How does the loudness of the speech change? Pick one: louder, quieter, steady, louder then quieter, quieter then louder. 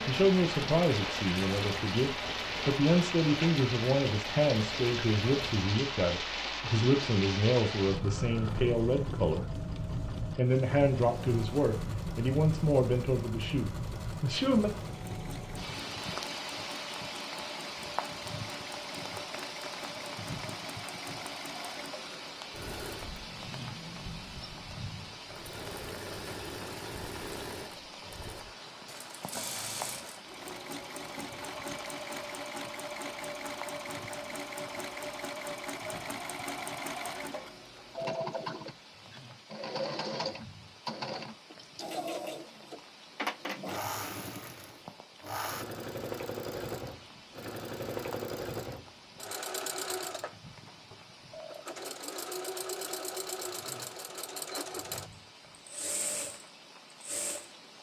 steady.